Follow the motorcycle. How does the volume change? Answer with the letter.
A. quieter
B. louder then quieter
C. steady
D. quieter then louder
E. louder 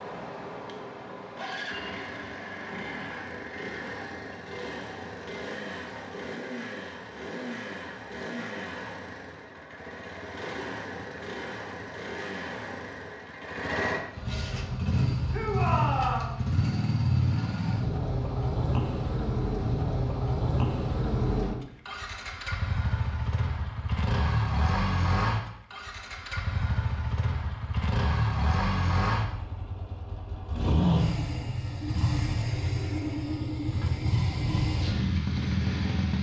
E.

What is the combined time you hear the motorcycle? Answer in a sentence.
You can hear the motorcycle for 36 seconds altogether.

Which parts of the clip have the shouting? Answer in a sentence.
The shouting can be heard from 15.3 to 16.4 s.